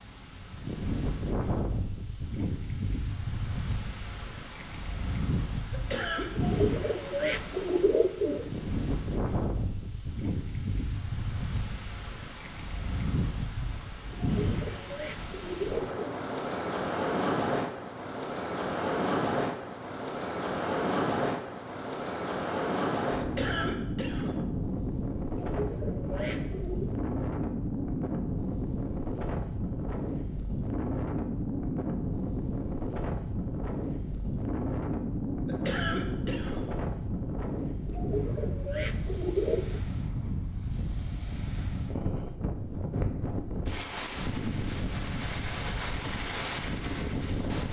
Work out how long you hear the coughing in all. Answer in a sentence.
The coughing can be heard for 3 seconds in total.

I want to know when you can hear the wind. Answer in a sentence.
The wind can be heard from 0.0 to 47.6 s.